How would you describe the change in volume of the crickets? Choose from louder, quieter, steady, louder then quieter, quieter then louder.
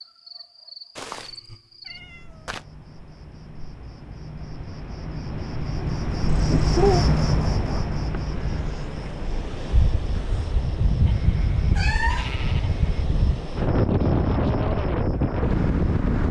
louder then quieter.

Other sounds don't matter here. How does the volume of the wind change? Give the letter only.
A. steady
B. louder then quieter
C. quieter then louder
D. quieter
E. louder
E.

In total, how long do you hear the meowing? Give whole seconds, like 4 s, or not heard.
3 s.